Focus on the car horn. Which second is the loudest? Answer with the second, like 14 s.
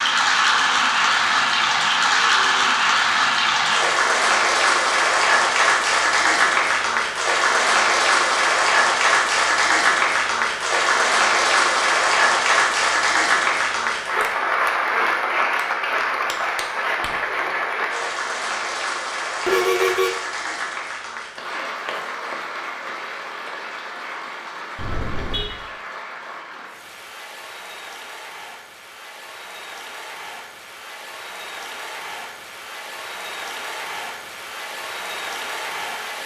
20 s.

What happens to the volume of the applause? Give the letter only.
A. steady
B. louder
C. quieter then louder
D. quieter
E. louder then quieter
D.